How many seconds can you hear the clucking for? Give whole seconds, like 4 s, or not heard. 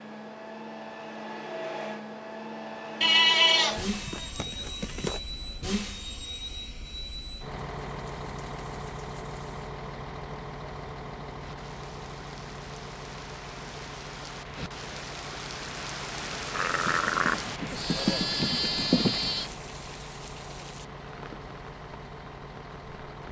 not heard.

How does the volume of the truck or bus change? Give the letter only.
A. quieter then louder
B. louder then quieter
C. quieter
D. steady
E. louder
C.